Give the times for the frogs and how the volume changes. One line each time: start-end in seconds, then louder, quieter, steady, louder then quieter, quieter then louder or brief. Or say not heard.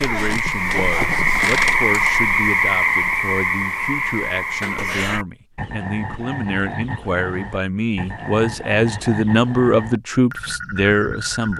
0.0-11.5 quieter.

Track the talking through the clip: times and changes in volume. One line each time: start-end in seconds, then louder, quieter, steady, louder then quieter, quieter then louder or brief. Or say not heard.
0.0-11.5 louder.